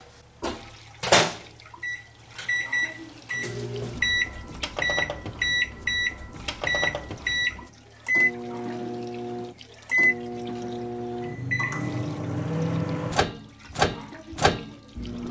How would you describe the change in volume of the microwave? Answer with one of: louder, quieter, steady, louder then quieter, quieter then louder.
steady.